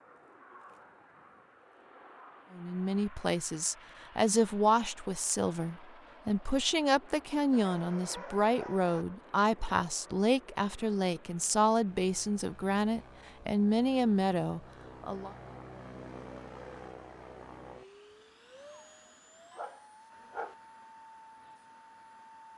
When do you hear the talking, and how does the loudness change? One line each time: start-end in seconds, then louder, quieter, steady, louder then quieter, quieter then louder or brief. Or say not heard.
2.5-15.3 steady.